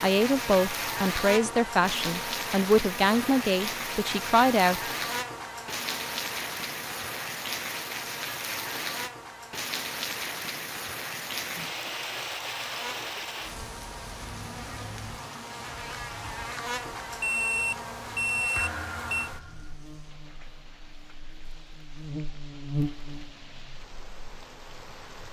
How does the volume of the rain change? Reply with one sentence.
The volume of the rain goes down.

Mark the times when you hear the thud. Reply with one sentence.
The thud can be heard from 18.6 to 19.8 s.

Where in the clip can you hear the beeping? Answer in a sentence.
The beeping can be heard from 17.2 to 19.3 s.